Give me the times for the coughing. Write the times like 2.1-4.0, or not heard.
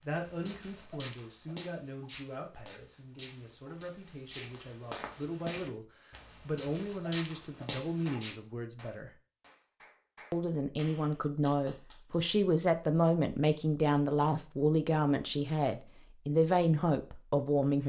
not heard.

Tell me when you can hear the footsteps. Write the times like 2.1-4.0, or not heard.
0.1-8.3.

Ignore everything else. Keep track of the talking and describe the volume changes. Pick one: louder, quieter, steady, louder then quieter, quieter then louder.
louder.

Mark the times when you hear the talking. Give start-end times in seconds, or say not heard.
0.0-9.1, 10.3-17.8.